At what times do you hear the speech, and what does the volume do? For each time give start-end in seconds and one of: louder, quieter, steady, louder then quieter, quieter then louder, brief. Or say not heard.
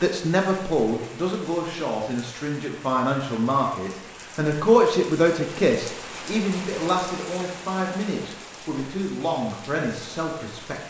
0.0-10.8 louder then quieter.